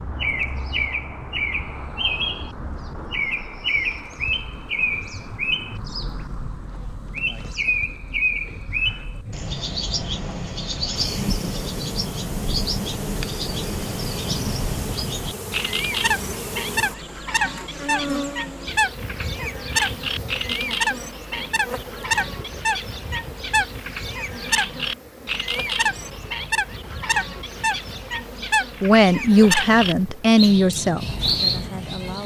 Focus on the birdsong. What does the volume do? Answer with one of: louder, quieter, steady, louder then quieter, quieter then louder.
steady.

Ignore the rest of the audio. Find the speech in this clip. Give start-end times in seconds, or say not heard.
28.8-32.2.